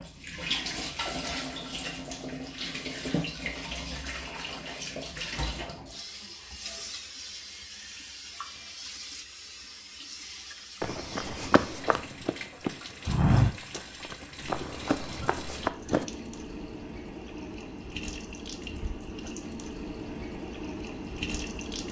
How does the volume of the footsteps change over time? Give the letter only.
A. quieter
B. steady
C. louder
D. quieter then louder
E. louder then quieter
E.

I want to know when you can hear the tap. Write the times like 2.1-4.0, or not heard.
0.0-21.8.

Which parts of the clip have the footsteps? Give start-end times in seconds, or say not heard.
10.8-16.1.